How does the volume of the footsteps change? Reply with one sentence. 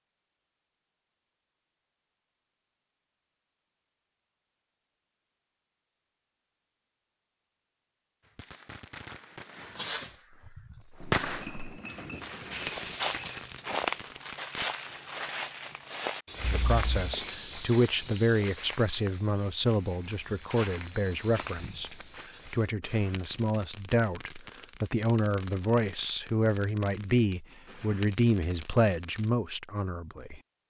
The volume of the footsteps goes up, then down.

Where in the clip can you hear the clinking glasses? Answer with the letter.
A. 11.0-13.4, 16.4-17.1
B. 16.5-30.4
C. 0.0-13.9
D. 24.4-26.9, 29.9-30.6
A.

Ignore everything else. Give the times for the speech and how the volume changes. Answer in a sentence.
The speech can be heard from 16.5 to 30.4 s, at a steady volume.